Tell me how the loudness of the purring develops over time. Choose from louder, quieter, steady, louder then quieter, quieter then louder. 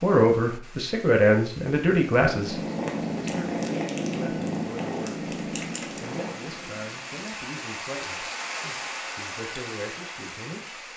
quieter.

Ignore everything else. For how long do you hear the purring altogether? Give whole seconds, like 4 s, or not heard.
5 s.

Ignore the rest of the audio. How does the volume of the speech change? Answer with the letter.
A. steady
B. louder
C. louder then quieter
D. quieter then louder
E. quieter
E.